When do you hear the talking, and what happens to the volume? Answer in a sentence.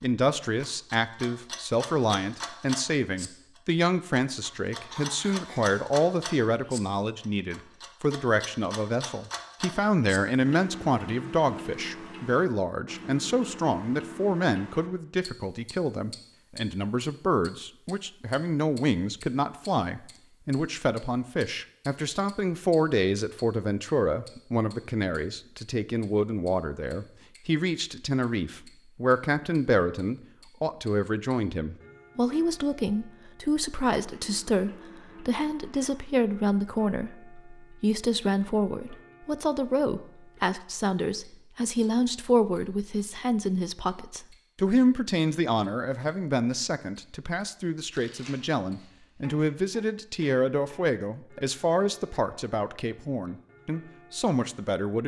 The talking can be heard from 0.0 to 55.0 s, at a steady volume.